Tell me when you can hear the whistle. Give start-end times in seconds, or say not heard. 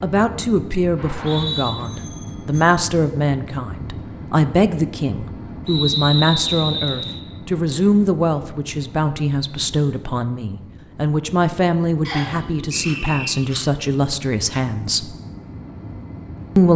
0.9-1.8, 5.7-7.2, 12.1-13.3.